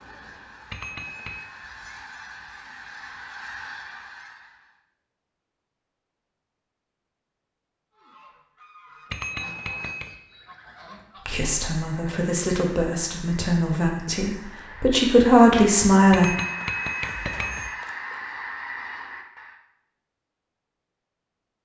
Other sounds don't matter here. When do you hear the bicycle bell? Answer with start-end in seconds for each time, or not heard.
0.7-1.4, 9.1-10.2, 16.1-17.7.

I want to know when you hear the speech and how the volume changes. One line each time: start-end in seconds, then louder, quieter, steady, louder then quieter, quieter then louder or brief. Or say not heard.
11.2-16.3 louder.